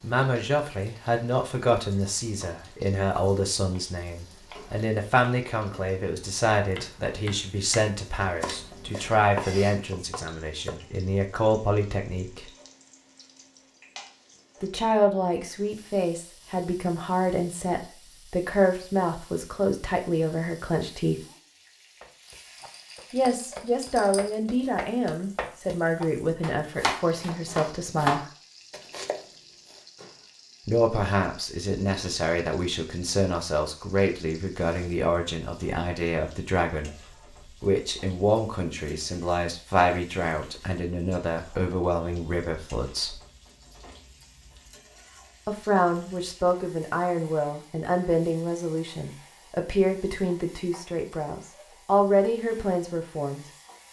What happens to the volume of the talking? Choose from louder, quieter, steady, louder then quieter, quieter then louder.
steady.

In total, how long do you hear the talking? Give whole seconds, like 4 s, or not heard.
45 s.